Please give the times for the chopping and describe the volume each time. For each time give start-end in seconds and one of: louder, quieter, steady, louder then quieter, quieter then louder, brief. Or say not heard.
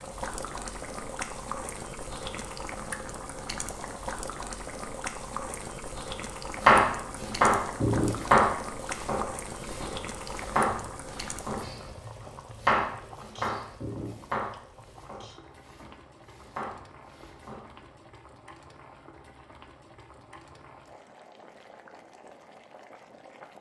6.6-17.9 quieter.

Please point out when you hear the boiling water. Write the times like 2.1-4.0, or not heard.
0.0-23.5.